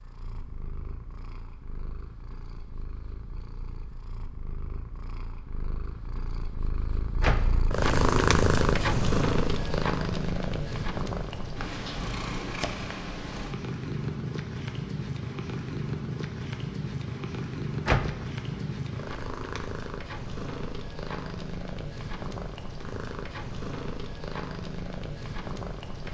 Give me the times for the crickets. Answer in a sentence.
The crickets can't be heard in this clip.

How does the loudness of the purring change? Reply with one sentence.
The loudness of the purring goes up, then down.